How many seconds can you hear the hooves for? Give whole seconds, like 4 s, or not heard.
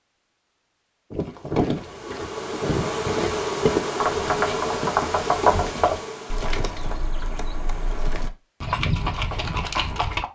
9 s.